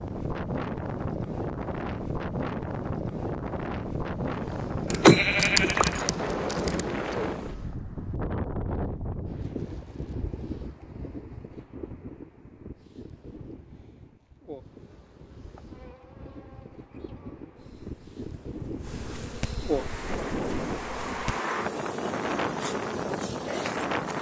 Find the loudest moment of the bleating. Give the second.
5 s.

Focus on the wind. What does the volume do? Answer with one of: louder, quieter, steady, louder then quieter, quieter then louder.
quieter then louder.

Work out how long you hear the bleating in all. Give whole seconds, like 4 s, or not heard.
2 s.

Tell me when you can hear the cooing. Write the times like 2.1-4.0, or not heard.
not heard.